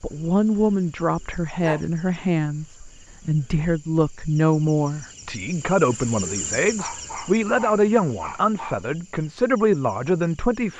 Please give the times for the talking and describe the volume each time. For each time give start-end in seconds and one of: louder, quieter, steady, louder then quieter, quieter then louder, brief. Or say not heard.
0.0-10.7 steady.